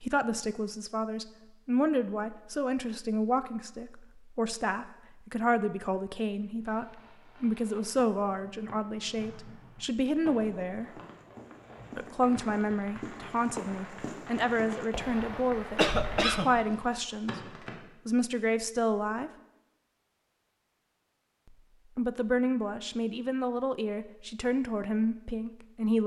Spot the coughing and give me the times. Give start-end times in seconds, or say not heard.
15.1-16.6.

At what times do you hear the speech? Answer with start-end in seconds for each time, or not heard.
0.0-10.9, 11.9-17.4, 18.1-19.3, 21.9-26.0.